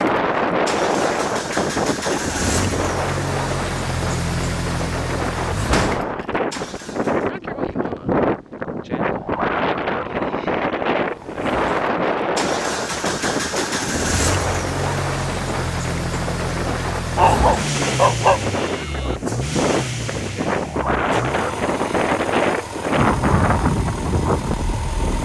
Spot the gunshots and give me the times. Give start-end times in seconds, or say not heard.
5.7-6.2.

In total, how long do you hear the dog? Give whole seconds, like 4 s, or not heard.
2 s.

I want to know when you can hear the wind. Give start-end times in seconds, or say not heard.
0.0-25.2.